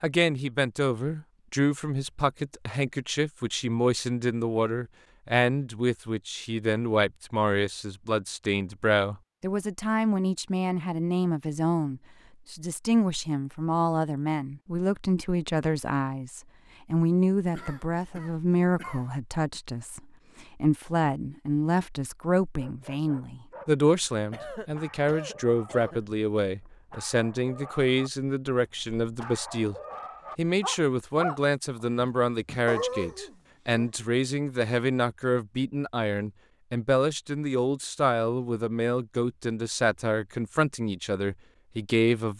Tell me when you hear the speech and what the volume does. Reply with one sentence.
You can hear the speech from 0.0 to 29.8 s, at a steady volume; and from 30.4 to 42.3 s, at a steady volume.